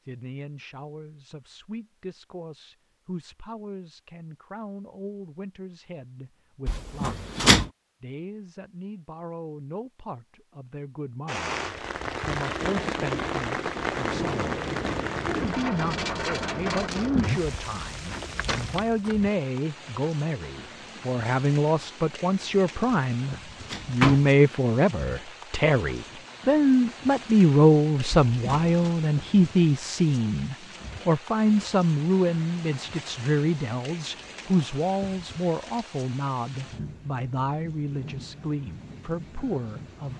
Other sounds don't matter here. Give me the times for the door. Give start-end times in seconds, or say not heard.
6.7-7.7, 23.7-24.3, 28.1-28.9.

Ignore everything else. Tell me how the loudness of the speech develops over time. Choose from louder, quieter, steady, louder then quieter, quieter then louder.
louder then quieter.